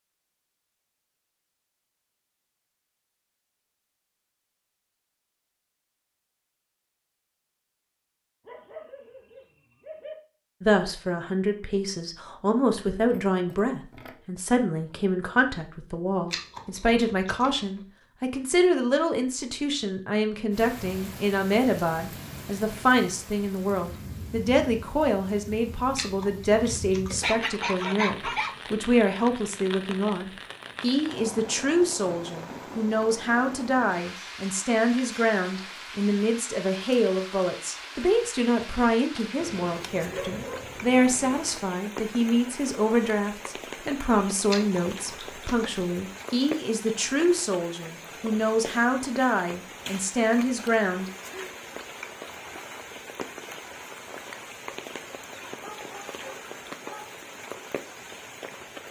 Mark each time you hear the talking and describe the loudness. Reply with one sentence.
The talking can be heard from 10.6 to 51.1 s, at a steady volume.